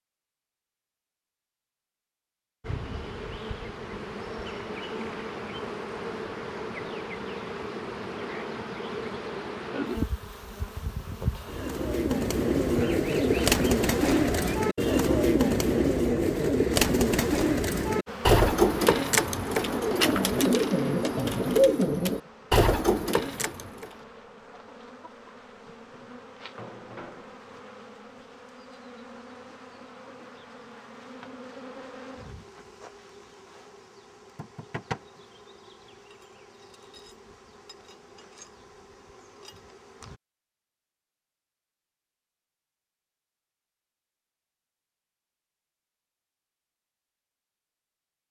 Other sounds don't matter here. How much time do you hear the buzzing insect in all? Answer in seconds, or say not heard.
34 s.